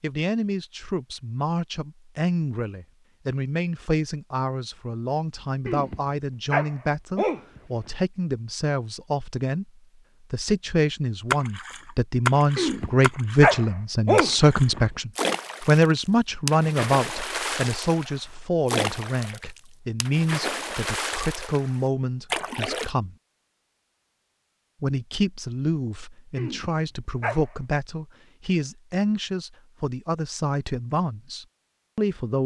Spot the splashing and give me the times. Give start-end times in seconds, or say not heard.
11.3-22.9.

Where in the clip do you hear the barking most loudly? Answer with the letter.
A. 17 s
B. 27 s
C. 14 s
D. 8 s
C.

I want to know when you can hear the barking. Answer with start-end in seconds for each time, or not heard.
5.7-7.9, 12.6-14.9, 26.4-27.4.